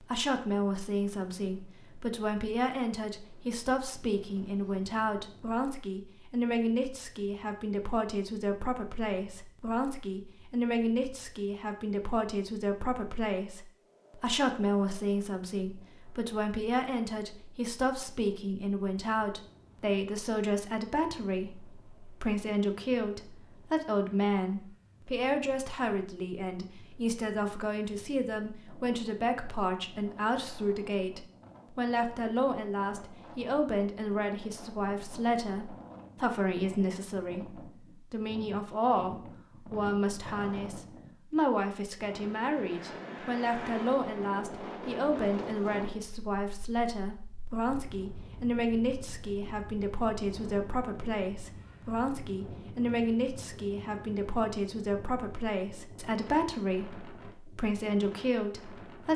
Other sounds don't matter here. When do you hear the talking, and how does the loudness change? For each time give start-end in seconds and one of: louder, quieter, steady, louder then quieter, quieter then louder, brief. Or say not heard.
0.0-59.1 steady.